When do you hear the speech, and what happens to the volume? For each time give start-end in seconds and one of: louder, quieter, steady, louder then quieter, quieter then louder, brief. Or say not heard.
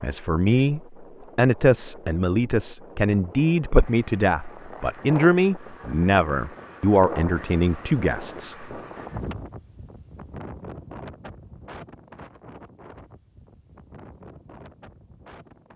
0.0-8.7 steady.